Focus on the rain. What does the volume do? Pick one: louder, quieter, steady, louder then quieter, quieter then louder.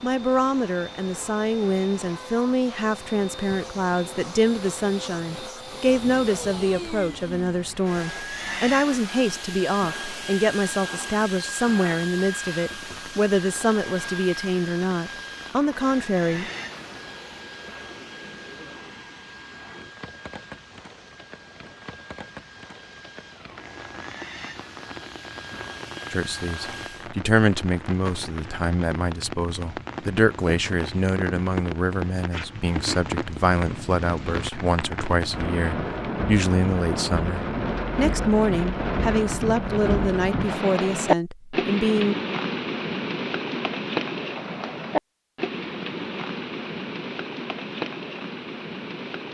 louder.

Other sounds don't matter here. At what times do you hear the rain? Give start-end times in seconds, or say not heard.
0.0-49.2.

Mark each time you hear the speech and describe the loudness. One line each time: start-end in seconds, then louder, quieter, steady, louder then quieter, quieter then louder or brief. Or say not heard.
0.0-16.5 steady
26.1-42.1 steady.